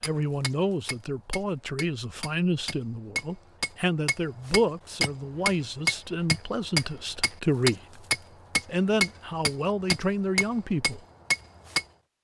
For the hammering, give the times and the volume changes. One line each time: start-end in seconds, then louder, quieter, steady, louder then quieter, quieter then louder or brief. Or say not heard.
0.0-11.8 louder.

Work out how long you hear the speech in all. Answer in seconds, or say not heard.
10 s.